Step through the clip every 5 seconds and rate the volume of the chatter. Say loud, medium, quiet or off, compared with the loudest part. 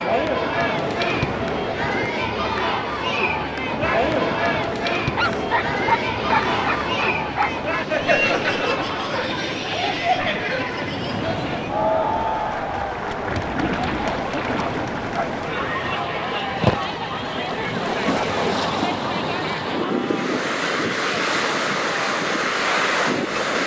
loud, loud, loud, medium, medium.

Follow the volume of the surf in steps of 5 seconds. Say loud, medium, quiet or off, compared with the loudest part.
medium, medium, medium, loud, loud.